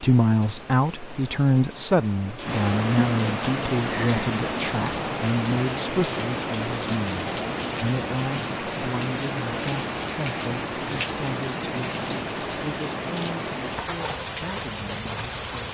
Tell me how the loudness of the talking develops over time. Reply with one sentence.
The volume of the talking goes down.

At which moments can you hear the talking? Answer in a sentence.
The talking can be heard from 0.0 to 15.6 s.